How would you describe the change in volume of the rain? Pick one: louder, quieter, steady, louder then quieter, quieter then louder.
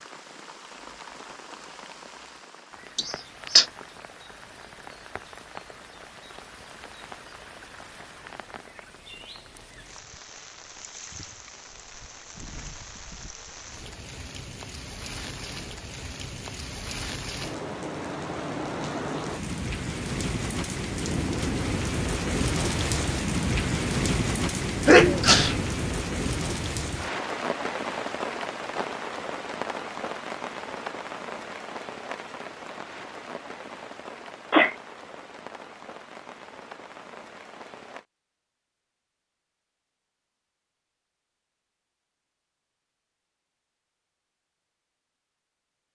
louder then quieter.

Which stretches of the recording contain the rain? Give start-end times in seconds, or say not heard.
0.0-38.0.